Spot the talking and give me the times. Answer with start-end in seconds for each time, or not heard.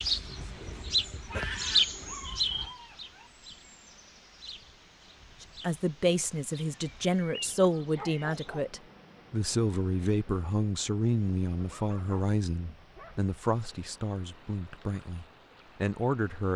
5.4-16.5.